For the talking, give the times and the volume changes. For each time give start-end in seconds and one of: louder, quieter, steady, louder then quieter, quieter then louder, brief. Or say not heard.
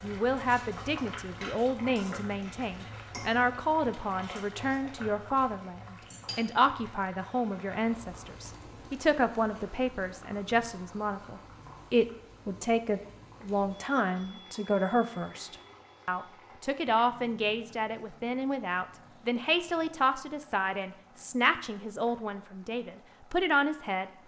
0.0-24.1 steady.